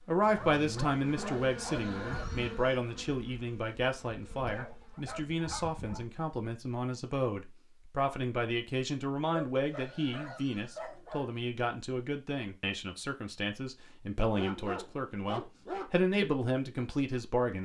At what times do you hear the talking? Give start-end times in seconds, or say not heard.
0.1-17.6.